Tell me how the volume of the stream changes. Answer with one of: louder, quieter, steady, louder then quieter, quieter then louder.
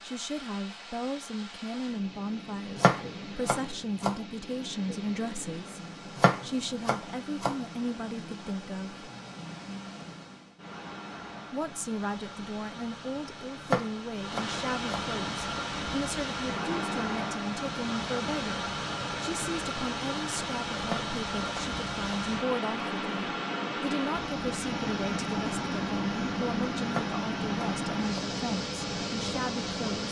louder.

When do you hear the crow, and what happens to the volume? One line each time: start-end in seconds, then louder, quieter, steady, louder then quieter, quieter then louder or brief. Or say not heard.
not heard.